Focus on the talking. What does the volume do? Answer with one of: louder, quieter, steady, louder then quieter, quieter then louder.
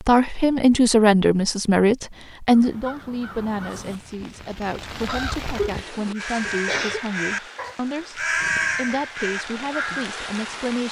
quieter.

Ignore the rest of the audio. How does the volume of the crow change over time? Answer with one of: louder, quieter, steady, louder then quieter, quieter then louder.
louder then quieter.